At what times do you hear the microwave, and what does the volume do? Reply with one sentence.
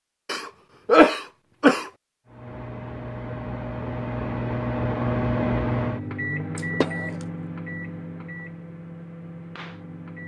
You can hear the microwave from 2.2 to 10.2 s, getting louder then quieter.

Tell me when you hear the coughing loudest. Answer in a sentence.
The volume of the coughing peaks at 1 second.